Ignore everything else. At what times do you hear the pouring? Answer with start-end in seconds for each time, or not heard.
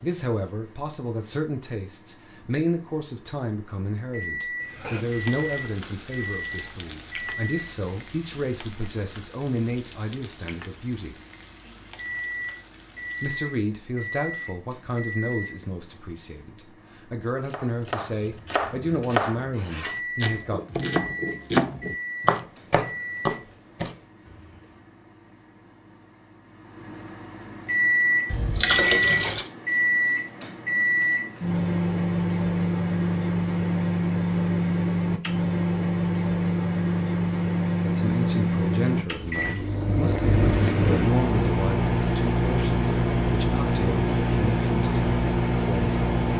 28.3-29.4.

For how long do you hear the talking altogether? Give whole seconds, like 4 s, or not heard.
27 s.